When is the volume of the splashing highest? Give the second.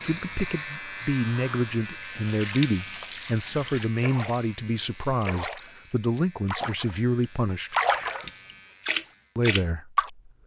8 s.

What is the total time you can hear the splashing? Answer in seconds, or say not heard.
6 s.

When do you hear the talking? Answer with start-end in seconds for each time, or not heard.
0.0-7.8, 9.3-10.1.